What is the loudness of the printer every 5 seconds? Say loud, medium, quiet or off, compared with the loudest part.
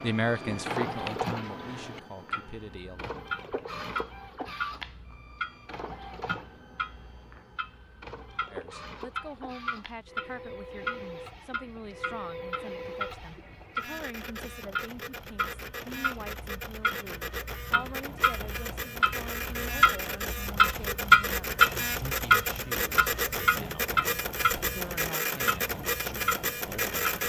medium, quiet, medium, medium, loud, loud.